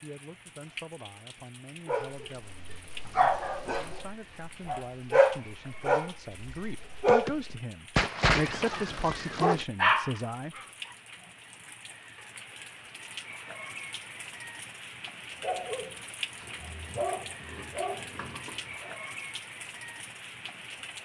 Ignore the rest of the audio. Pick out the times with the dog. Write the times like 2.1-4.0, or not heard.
1.9-10.9, 15.4-18.9.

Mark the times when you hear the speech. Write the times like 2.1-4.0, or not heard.
0.0-10.6.